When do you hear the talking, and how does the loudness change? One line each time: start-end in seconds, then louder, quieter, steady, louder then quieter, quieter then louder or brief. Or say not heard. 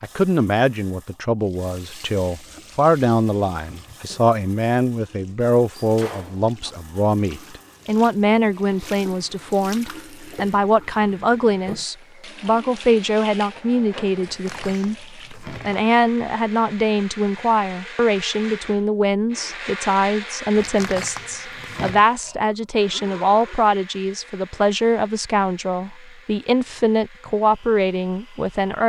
0.0-28.8 steady.